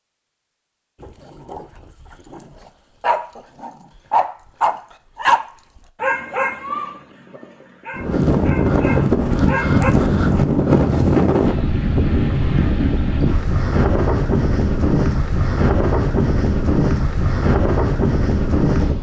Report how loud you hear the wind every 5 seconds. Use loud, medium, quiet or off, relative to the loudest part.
off, loud, loud, loud.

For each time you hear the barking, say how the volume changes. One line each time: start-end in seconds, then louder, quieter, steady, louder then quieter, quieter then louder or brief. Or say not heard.
1.0-9.9 louder then quieter.